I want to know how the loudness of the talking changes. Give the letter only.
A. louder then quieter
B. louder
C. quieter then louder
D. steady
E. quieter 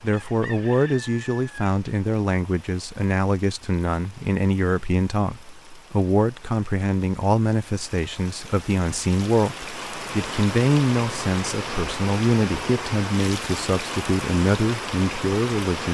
D.